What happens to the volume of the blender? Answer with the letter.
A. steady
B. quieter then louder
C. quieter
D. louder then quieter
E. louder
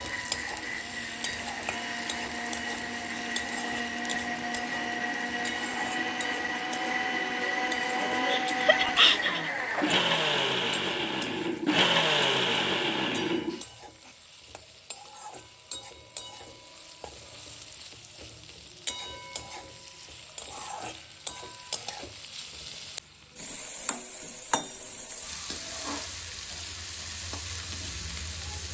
E.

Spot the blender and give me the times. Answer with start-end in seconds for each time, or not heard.
0.0-14.1.